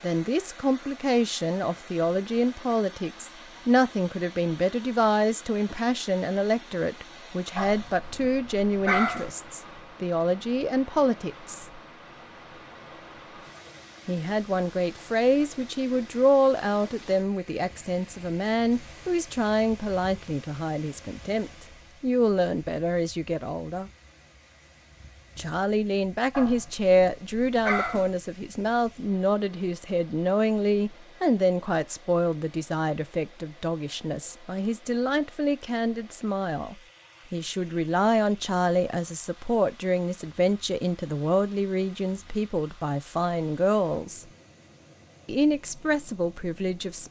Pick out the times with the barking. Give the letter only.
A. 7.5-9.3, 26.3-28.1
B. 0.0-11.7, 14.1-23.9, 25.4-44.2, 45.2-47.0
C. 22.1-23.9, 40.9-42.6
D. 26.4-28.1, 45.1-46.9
A.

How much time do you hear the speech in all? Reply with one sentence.
You can hear the speech for 42 seconds altogether.